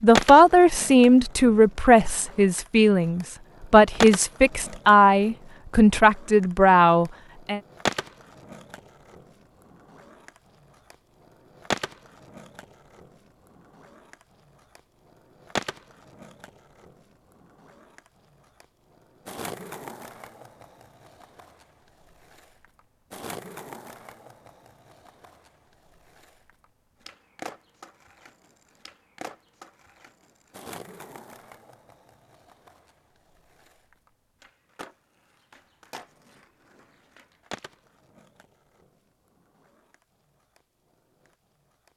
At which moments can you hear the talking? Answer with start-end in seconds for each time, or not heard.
0.0-7.6.